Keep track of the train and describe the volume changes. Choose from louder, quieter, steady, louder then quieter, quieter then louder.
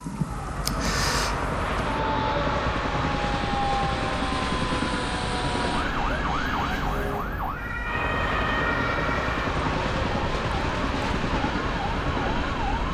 steady.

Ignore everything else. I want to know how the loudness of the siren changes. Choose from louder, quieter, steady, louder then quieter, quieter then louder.
steady.